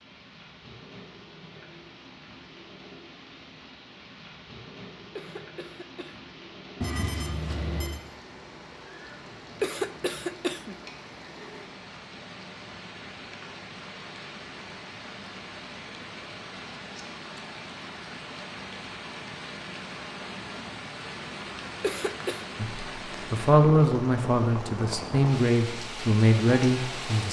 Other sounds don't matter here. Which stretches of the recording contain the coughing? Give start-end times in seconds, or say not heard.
5.2-6.2, 9.6-10.8, 21.8-22.4.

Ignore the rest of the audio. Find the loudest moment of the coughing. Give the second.
10 s.